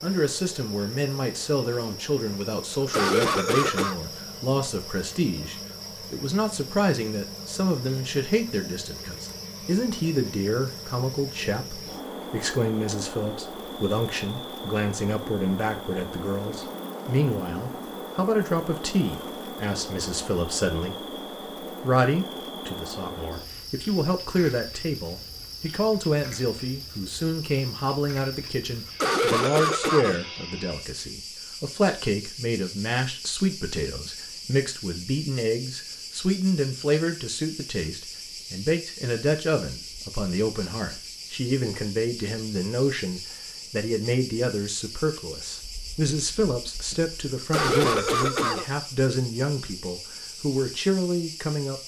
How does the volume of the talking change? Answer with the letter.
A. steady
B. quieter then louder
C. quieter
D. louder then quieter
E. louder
A.